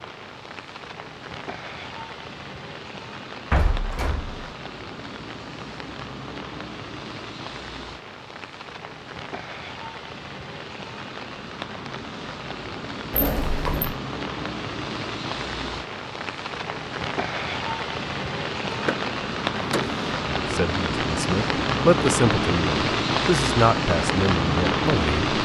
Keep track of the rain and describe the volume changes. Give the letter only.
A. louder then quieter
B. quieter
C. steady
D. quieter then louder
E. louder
E.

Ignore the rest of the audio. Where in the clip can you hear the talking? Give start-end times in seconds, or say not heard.
20.4-25.3.